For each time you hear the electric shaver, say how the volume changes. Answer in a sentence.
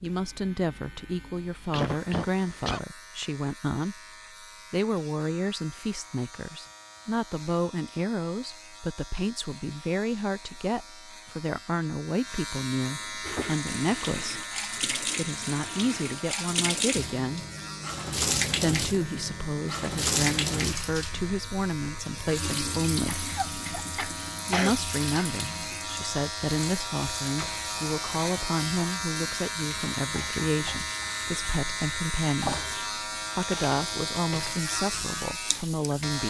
The electric shaver can be heard from 0.0 to 36.2 s, getting louder.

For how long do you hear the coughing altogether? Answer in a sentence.
You can hear the coughing for 3 seconds altogether.